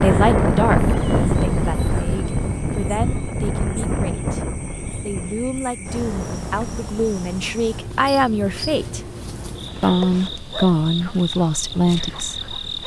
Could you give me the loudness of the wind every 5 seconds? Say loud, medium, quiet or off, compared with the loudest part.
loud, quiet, quiet.